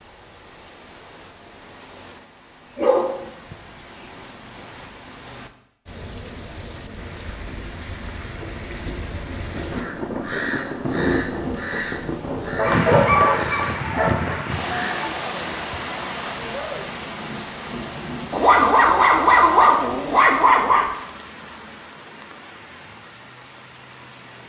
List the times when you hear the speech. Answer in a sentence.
The speech can't be heard in this clip.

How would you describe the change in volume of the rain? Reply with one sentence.
The volume of the rain goes up, then down.